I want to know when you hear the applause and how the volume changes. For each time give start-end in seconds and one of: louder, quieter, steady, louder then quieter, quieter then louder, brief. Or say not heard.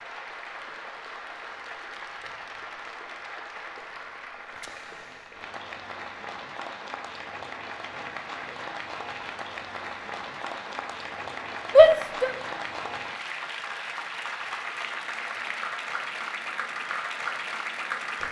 0.0-18.2 louder.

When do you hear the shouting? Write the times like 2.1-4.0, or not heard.
11.8-12.3.